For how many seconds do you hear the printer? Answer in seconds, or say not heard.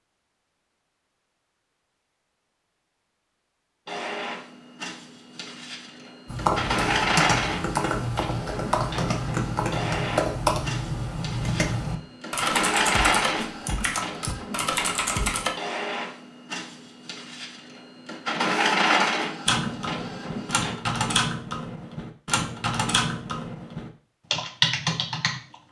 17 s.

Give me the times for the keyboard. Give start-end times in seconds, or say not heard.
6.2-15.5, 19.4-25.6.